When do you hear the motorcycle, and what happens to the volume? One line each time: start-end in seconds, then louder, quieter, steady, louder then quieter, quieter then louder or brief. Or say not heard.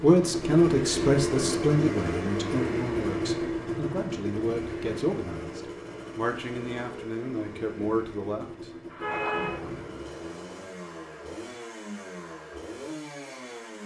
0.0-13.8 quieter.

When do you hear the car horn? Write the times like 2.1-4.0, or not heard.
8.9-9.9.